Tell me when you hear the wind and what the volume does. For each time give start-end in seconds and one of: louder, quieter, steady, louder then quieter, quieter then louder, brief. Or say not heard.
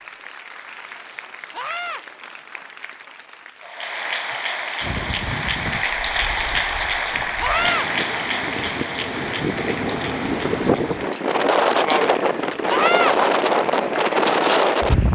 4.8-15.1 louder.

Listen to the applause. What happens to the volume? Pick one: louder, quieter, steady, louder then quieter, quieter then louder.
louder then quieter.